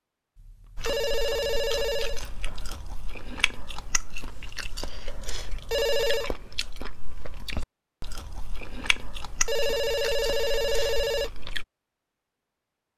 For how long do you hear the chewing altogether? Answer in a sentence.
The chewing can be heard for 11 seconds in total.